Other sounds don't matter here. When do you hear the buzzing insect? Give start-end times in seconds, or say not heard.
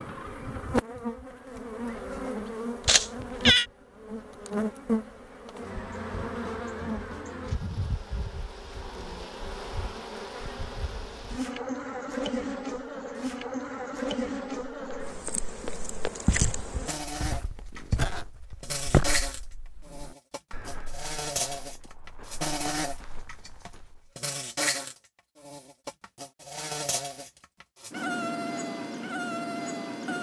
0.0-30.1.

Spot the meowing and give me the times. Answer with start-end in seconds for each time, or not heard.
2.9-3.6.